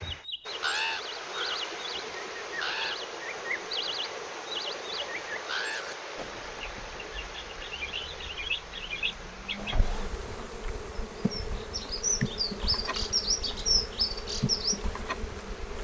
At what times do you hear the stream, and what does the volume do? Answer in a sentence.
You can hear the stream from 0.0 to 15.7 s, getting quieter.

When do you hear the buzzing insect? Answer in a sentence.
The buzzing insect can be heard from 9.8 to 15.7 s.